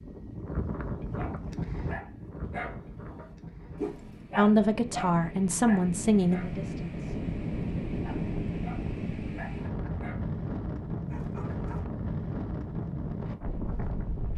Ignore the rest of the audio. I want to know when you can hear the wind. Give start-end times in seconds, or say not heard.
0.0-14.3.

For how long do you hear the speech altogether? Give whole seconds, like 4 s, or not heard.
3 s.